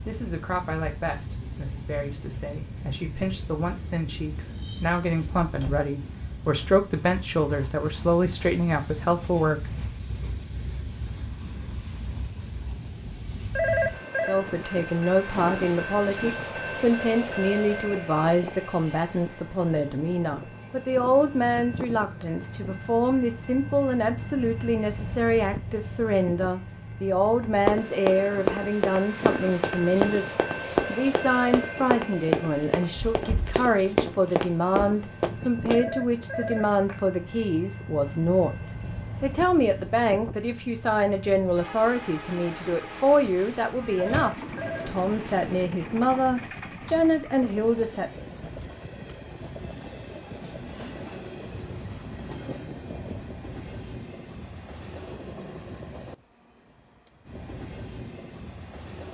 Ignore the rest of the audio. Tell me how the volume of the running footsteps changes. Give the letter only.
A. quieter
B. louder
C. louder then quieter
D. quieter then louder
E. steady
D.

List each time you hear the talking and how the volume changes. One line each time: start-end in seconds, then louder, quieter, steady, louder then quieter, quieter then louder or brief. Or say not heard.
0.1-9.8 louder
14.2-48.1 steady.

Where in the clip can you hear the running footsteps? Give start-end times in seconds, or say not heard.
27.6-35.8.